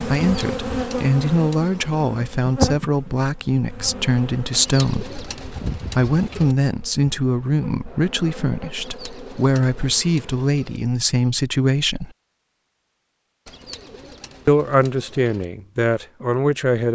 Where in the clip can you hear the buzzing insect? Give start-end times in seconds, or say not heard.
0.0-10.4.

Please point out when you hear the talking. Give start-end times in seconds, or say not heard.
0.0-12.1, 14.4-16.9.